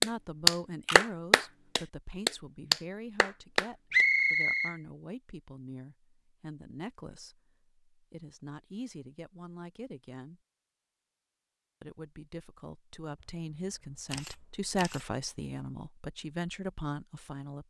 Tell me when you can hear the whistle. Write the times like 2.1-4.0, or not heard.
3.9-4.8.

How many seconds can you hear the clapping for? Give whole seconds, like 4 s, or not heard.
4 s.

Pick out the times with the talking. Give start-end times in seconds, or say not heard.
0.0-10.4, 11.8-17.6.